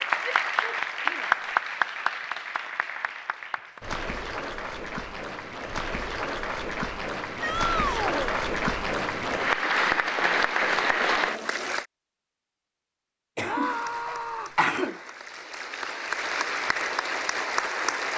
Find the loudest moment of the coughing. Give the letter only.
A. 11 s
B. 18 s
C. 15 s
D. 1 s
C.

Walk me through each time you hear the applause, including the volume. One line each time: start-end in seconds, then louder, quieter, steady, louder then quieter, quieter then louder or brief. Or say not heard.
0.0-11.8 quieter then louder
13.6-18.1 louder.